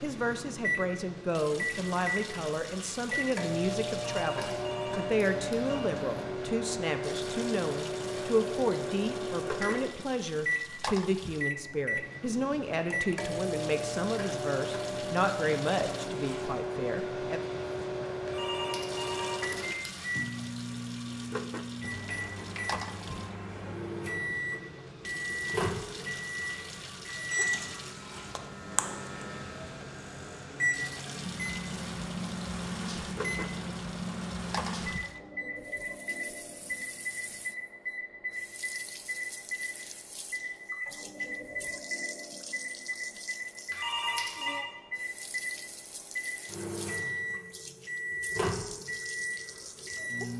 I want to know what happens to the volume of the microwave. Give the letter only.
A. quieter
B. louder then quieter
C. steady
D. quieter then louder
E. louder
C.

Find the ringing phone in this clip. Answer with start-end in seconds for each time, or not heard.
4.0-5.8, 18.2-19.8, 43.7-44.6.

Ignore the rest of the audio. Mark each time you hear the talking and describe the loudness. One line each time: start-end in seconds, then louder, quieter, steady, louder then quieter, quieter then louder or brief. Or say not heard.
0.0-17.4 steady.